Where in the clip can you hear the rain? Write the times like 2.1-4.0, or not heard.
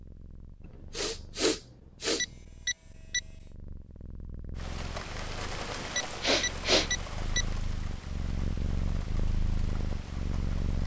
4.5-10.8.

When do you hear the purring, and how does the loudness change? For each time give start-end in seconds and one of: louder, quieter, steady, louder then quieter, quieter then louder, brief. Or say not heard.
0.0-10.8 louder.